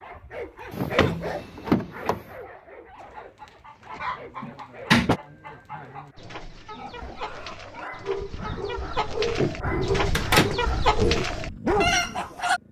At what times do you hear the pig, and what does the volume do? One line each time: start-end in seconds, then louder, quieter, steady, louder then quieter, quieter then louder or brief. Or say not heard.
6.7-12.2 louder then quieter.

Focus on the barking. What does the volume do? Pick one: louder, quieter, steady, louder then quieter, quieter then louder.
quieter then louder.